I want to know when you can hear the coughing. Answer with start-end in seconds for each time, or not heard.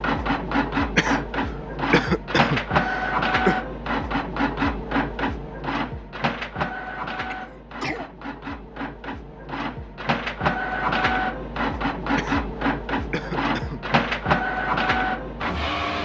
0.9-3.6, 7.3-8.1, 12.2-14.0.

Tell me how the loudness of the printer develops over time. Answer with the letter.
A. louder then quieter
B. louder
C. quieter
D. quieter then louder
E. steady
D.